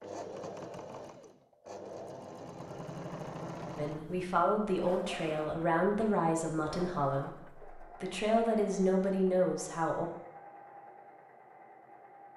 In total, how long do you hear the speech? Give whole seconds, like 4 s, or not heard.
6 s.